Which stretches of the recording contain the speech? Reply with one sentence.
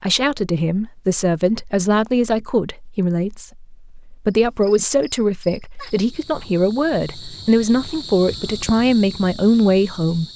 You can hear the speech from 0.0 to 10.3 s.